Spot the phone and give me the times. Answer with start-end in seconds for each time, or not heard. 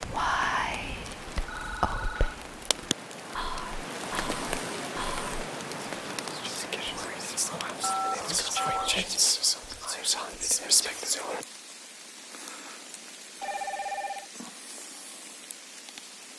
1.4-2.5, 7.8-8.9, 13.4-14.2.